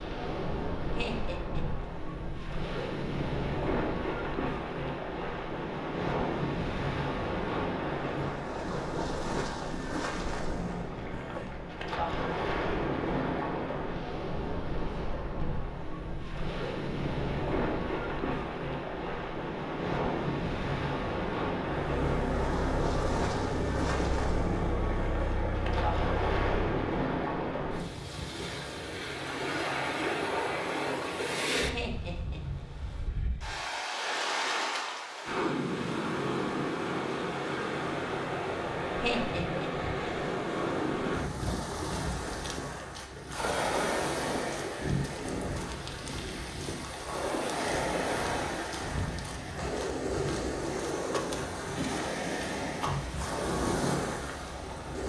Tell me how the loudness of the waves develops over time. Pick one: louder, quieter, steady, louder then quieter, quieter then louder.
steady.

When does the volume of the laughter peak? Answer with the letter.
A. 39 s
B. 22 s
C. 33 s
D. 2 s
A.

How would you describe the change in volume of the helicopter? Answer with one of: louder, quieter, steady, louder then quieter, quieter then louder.
steady.